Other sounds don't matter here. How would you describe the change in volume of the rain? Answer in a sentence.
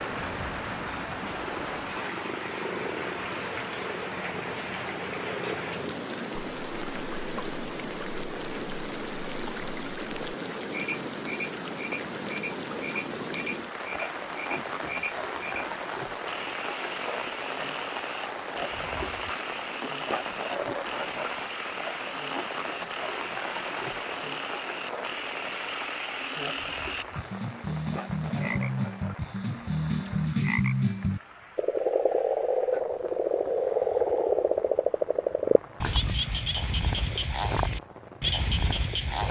The loudness of the rain goes down.